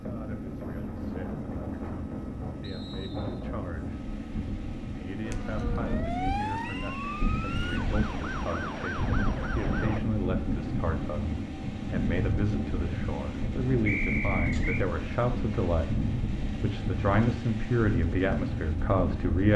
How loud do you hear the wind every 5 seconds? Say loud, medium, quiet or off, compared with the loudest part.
medium, loud, loud, loud.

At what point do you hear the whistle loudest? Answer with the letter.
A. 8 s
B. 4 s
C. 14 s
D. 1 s
C.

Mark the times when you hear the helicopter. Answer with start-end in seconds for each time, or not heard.
0.0-19.4.